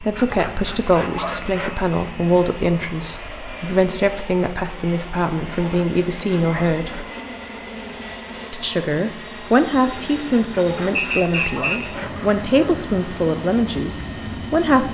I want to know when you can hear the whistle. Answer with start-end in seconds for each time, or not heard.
10.9-11.9.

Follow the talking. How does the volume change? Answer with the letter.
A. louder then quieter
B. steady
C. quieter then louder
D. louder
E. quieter
B.